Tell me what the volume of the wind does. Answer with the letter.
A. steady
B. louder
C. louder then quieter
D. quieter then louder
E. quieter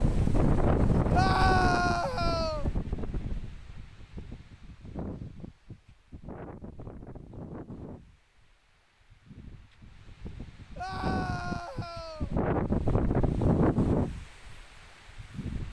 D.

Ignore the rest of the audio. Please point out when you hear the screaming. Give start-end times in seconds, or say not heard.
1.1-2.7, 10.8-12.3.